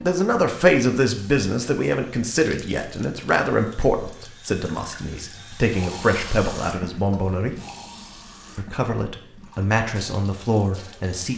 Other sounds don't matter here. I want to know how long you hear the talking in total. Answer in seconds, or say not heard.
10 s.